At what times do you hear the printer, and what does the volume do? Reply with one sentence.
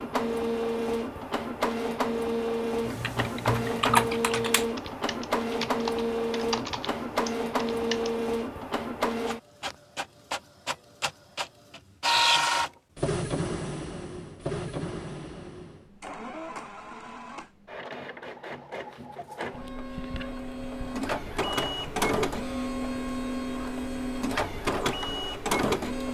You can hear the printer from 0.0 to 26.0 s, getting quieter then louder.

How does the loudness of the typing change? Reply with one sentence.
The loudness of the typing goes down.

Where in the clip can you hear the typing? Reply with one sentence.
The typing can be heard from 2.9 to 8.2 s.